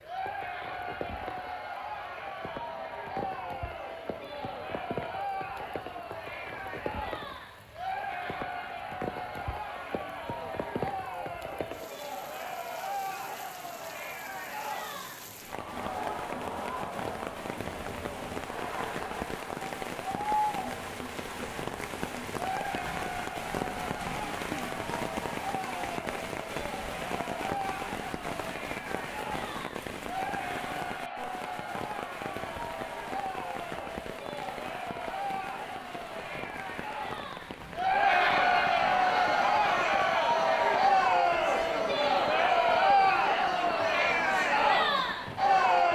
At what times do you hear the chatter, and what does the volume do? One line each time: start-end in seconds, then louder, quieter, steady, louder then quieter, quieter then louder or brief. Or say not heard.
0.0-45.9 louder.